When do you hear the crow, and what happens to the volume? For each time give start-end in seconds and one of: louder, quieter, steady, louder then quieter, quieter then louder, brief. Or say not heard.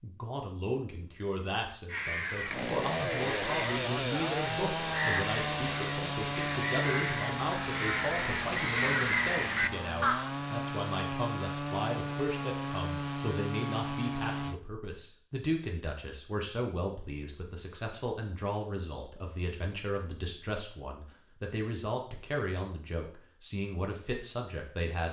1.9-10.3 louder.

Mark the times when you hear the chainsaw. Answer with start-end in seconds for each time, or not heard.
2.5-14.6.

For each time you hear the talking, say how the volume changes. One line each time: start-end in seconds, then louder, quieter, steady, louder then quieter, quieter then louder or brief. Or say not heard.
0.0-25.0 steady.